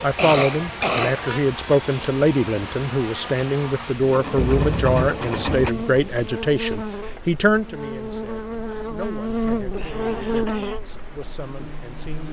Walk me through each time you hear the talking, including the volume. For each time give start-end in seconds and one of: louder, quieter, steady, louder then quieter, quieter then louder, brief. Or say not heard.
0.0-12.2 quieter.